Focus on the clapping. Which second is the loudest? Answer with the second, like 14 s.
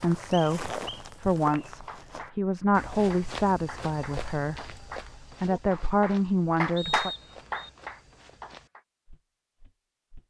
7 s.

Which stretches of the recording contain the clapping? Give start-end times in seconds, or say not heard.
1.6-8.8.